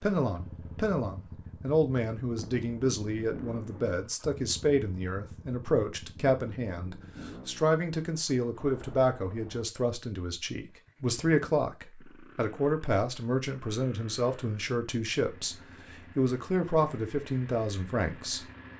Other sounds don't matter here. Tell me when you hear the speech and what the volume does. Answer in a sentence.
You can hear the speech from 0.0 to 18.7 s, at a steady volume.